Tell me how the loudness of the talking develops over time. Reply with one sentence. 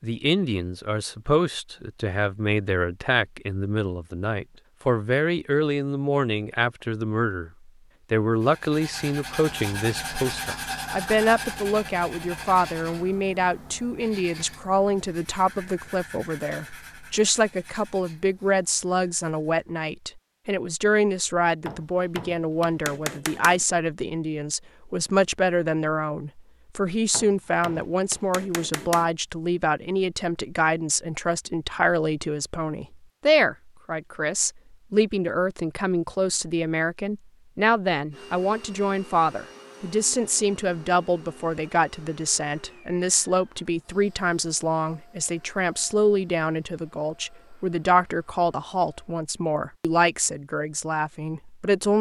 The loudness of the talking stays about the same.